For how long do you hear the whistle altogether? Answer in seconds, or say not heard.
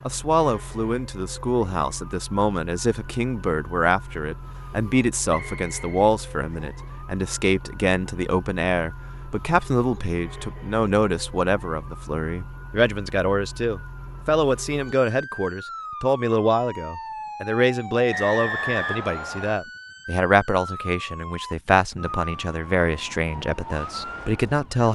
3 s.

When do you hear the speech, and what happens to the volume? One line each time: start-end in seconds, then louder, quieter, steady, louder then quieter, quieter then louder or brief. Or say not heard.
0.1-24.9 steady.